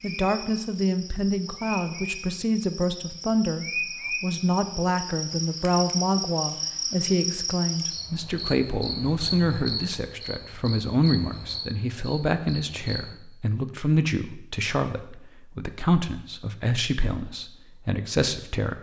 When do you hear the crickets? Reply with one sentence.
You can hear the crickets from 0.0 to 13.2 s.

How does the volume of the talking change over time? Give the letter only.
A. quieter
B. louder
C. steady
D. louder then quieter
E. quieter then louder
C.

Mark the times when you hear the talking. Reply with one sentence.
You can hear the talking from 0.0 to 18.7 s.